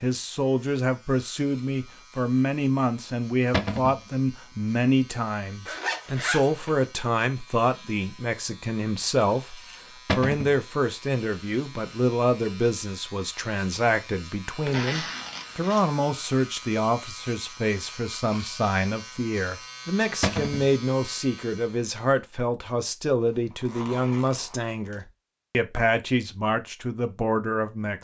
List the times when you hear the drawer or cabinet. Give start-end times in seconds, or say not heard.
3.5-4.0, 10.1-10.6, 20.2-20.7.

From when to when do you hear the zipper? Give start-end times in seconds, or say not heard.
5.7-6.8, 14.7-15.8, 23.2-25.1.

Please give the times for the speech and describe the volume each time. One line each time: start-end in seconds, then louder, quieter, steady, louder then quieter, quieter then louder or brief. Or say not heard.
0.0-27.9 steady.